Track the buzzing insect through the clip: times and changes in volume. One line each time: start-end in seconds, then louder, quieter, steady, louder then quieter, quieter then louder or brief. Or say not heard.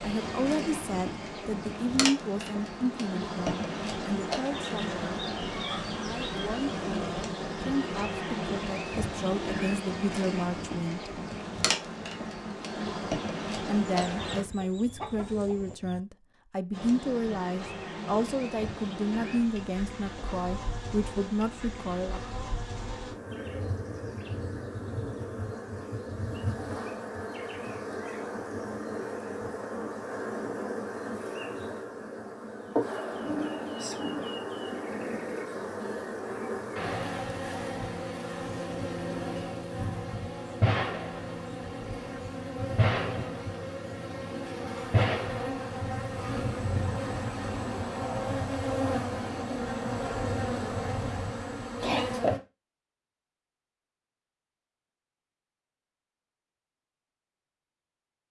0.0-14.4 steady
16.7-52.4 louder.